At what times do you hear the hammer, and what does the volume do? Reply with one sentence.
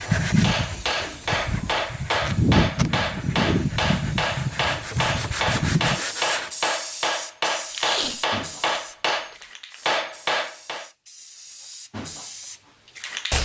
The hammer can be heard from 0.0 to 10.9 s, at a steady volume.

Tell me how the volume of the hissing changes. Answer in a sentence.
The volume of the hissing goes down.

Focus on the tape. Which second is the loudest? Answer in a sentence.
The loudest moment of the tape is at 8 seconds.